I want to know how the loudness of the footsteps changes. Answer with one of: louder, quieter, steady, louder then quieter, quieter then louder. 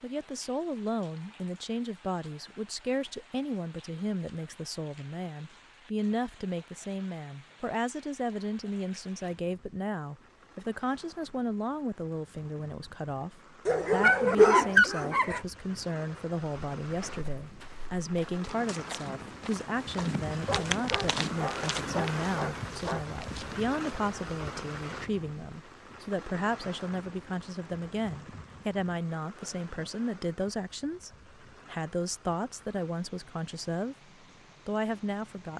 louder then quieter.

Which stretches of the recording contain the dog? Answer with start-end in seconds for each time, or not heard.
13.7-15.4, 20.4-23.1.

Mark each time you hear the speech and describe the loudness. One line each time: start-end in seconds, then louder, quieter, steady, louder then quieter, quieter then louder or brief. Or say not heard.
0.0-34.0 steady
34.6-35.5 brief.